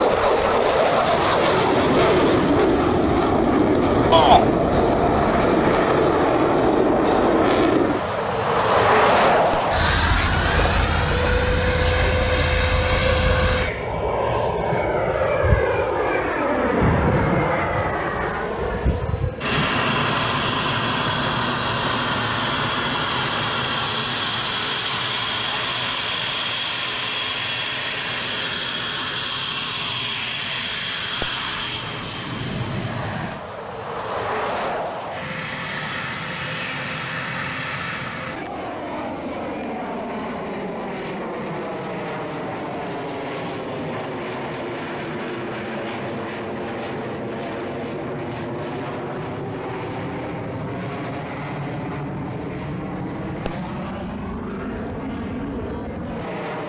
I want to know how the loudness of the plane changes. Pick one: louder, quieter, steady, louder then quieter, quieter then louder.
quieter.